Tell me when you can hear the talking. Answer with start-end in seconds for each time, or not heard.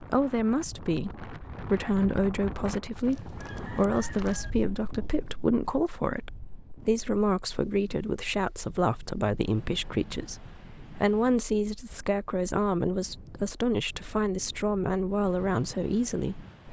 0.0-16.6.